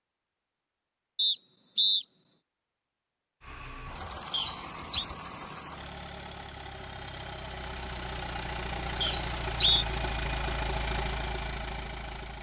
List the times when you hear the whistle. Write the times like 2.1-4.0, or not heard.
1.1-2.0, 4.3-5.0, 9.0-9.8.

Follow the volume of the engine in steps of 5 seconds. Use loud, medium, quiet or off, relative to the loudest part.
medium, loud, loud.